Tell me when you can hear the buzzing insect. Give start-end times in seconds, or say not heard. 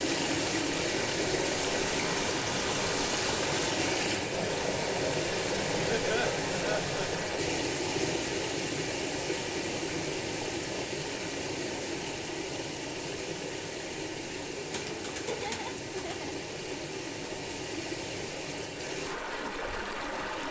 not heard.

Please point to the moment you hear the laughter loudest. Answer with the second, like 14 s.
6 s.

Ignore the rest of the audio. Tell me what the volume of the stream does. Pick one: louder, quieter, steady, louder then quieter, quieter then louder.
quieter.